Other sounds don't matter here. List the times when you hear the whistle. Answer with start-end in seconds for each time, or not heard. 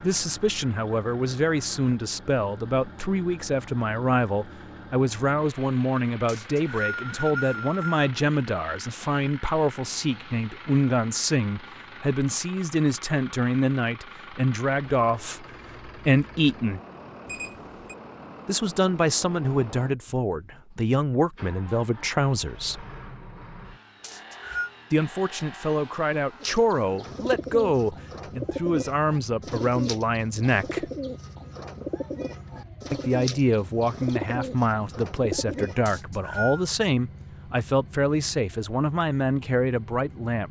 6.2-8.1, 24.0-24.7, 35.9-36.6.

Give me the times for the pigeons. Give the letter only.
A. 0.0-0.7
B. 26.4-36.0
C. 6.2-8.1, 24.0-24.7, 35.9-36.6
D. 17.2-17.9
B.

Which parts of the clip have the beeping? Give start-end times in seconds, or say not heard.
17.2-17.9.